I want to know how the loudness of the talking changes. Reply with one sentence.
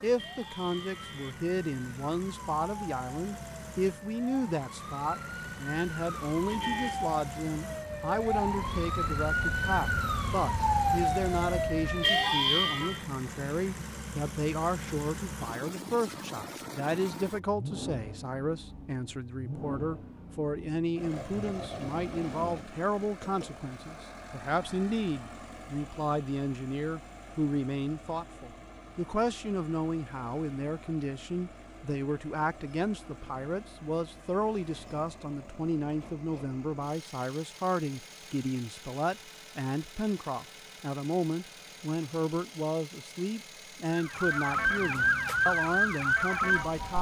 The volume of the talking stays about the same.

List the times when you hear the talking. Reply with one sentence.
You can hear the talking from 0.0 to 46.9 s.